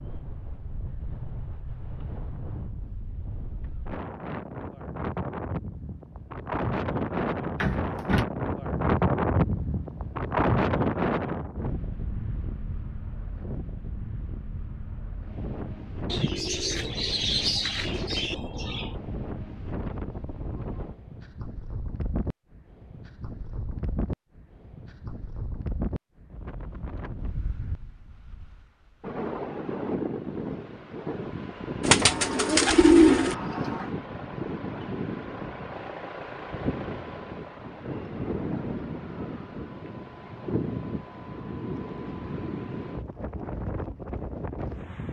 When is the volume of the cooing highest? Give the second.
33 s.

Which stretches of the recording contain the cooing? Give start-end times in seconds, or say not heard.
16.1-18.9, 31.8-33.4.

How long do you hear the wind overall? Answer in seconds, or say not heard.
45 s.